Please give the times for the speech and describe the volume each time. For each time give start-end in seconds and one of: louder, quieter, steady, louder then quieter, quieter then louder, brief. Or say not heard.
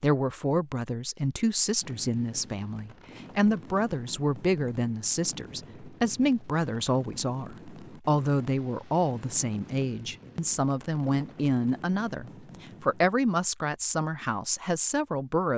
0.0-15.5 steady.